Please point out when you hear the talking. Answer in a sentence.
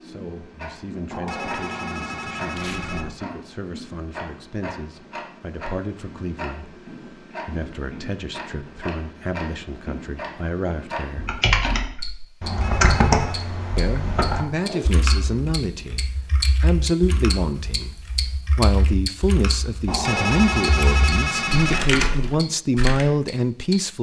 The talking can be heard from 0.0 to 11.3 s and from 13.8 to 23.9 s.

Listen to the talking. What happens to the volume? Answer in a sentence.
The loudness of the talking goes up.